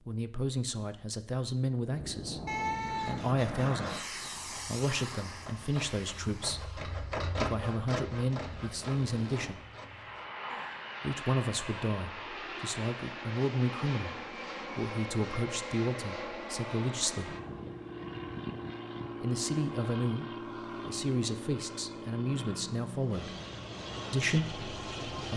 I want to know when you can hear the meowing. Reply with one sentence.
You can hear the meowing from 2.5 to 3.2 s.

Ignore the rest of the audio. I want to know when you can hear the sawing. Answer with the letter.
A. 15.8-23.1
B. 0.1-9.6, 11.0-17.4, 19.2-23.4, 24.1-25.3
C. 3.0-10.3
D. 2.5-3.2
C.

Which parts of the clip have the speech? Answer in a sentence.
The speech can be heard from 0.1 to 9.6 s, from 11.0 to 17.4 s, from 19.2 to 23.4 s and from 24.1 to 25.3 s.